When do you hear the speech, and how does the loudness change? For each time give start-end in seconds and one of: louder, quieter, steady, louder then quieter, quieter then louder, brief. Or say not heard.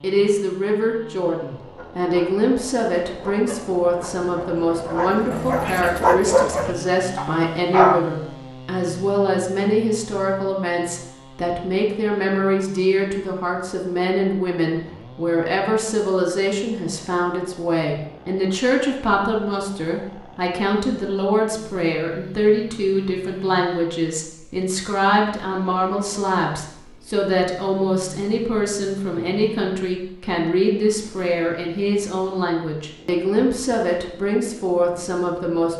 0.0-35.7 steady.